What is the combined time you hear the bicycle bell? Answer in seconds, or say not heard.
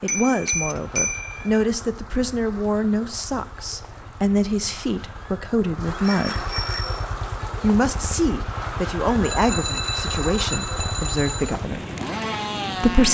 5 s.